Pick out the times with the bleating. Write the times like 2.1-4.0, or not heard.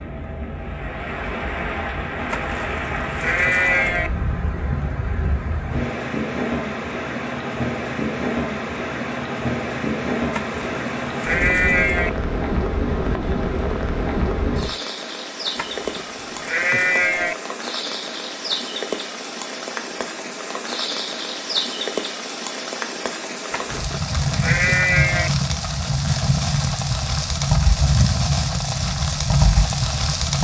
2.3-4.1, 10.3-12.1, 15.6-17.4, 23.5-25.3.